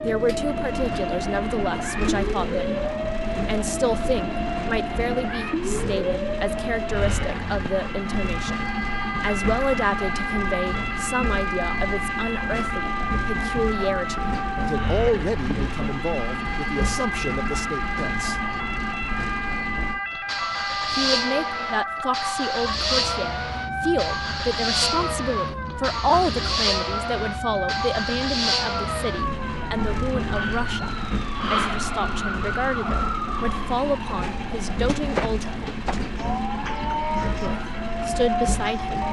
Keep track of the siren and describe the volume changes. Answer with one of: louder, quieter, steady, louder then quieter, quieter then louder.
steady.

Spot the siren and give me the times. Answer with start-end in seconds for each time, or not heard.
0.0-39.0.